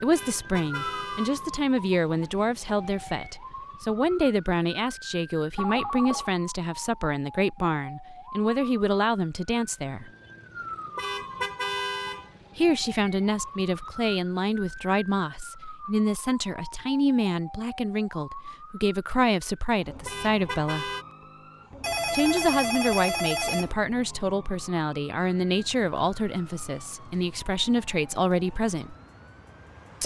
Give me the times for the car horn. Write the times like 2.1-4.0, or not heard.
0.1-1.4, 10.9-12.3, 20.1-21.1.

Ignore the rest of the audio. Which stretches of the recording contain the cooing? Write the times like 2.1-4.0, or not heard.
not heard.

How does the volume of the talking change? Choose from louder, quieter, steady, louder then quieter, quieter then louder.
steady.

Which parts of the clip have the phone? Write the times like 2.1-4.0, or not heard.
5.5-6.3, 21.8-23.8.